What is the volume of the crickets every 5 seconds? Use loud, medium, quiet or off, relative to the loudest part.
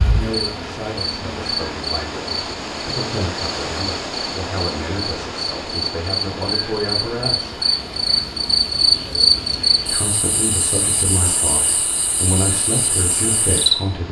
medium, loud, medium.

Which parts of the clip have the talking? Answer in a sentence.
The talking can be heard from 0.1 to 7.6 s and from 9.9 to 14.0 s.